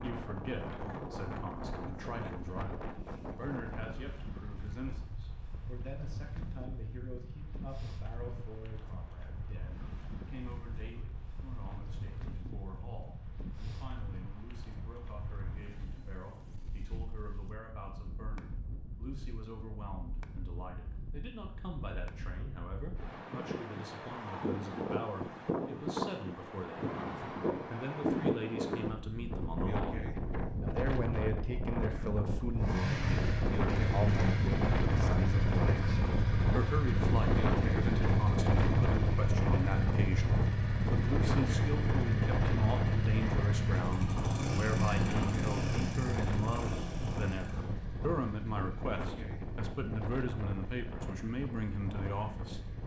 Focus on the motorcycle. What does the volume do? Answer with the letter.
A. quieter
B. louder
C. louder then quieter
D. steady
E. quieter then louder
A.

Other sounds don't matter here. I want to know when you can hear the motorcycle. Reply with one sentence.
The motorcycle can be heard from 32.5 to 52.8 s.